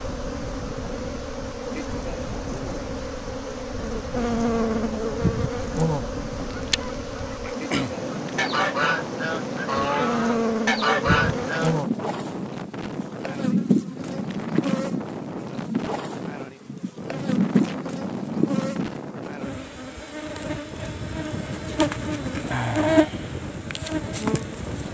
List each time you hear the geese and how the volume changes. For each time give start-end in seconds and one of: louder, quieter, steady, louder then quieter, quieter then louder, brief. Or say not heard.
6.5-11.8 louder.